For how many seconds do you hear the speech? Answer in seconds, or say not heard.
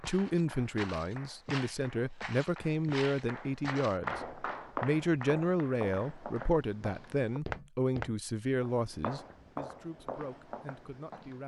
11 s.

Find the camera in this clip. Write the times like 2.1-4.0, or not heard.
not heard.